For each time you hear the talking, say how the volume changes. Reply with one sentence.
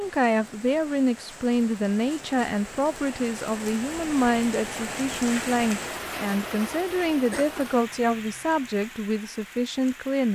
You can hear the talking from 0.0 to 10.3 s, at a steady volume.